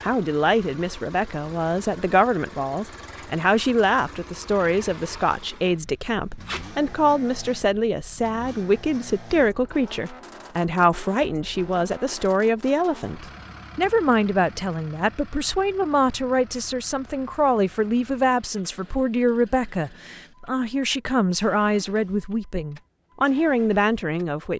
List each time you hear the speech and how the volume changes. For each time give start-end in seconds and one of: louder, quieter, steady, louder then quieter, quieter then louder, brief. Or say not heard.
0.0-24.5 steady.